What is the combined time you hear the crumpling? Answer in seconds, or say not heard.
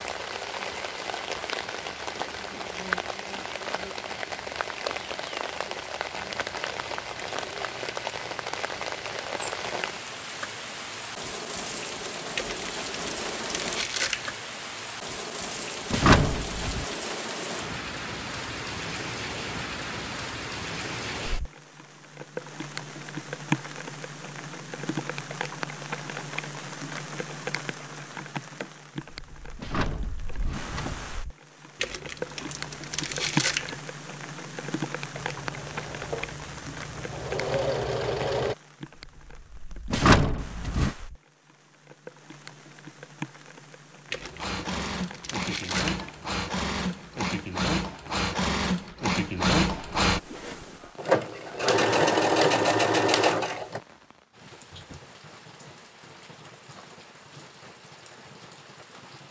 6 s.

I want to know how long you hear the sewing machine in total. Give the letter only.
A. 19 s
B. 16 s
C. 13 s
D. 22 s
C.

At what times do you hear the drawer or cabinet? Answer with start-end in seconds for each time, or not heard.
15.9-16.9, 29.6-31.1, 39.9-41.0.